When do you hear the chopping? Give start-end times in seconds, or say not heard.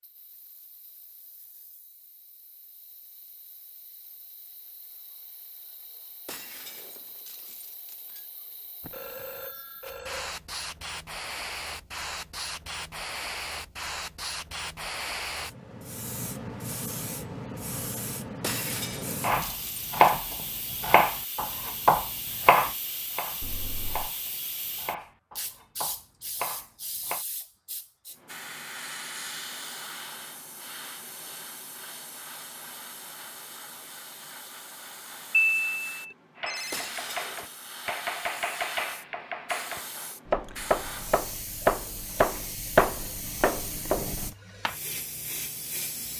19.2-27.2, 36.4-44.3.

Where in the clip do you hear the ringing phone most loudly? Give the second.
36 s.